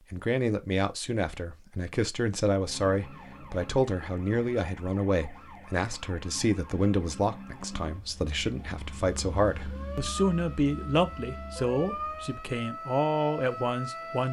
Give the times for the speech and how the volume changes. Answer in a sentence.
The speech can be heard from 0.1 to 14.2 s, at a steady volume.